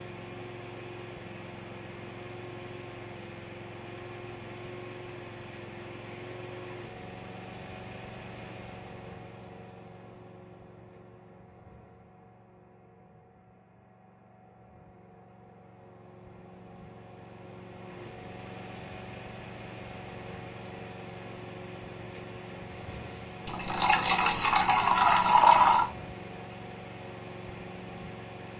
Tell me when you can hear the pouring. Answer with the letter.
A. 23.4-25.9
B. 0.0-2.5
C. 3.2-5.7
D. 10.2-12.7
A.